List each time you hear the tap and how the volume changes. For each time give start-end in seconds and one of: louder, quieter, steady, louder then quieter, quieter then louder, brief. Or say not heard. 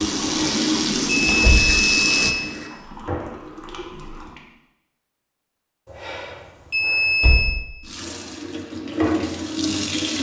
0.0-4.5 quieter
7.8-10.1 brief.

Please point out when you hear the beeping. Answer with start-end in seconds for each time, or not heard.
0.2-2.5, 5.8-7.6.